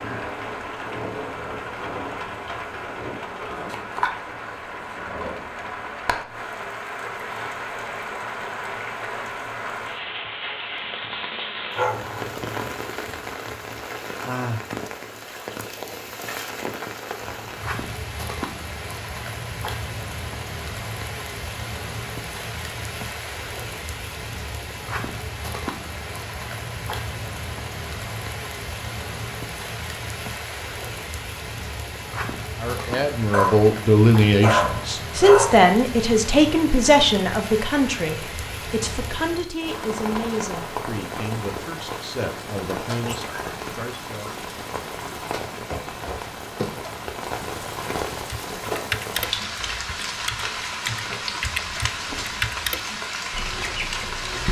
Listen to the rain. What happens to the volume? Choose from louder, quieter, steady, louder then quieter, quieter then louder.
steady.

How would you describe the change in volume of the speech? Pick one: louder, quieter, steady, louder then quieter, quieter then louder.
quieter.